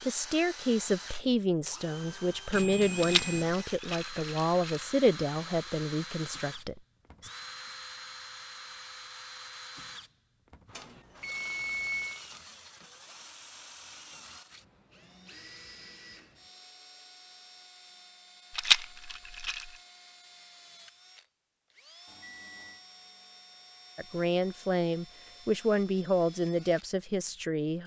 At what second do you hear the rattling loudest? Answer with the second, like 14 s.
19 s.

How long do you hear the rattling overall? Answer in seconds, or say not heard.
3 s.